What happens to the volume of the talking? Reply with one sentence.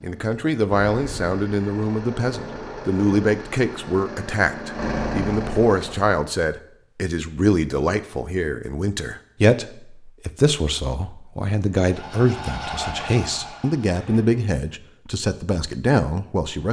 The volume of the talking stays about the same.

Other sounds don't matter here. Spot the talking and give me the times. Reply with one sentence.
The talking can be heard from 0.0 to 16.6 s.